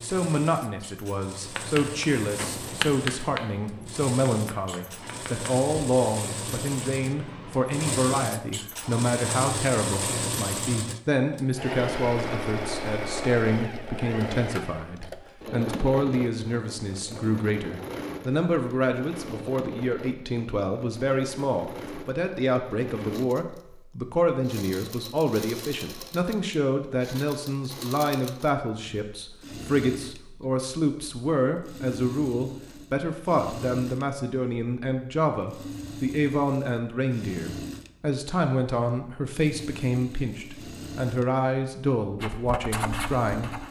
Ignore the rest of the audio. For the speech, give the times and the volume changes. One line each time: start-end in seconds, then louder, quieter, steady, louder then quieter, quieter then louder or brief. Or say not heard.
0.0-43.6 steady.